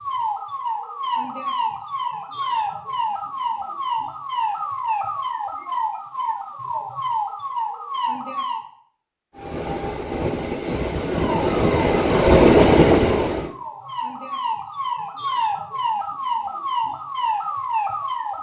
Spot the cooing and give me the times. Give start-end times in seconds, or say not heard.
not heard.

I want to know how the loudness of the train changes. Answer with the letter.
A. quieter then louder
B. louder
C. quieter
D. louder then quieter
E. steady
B.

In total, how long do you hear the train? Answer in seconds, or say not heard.
4 s.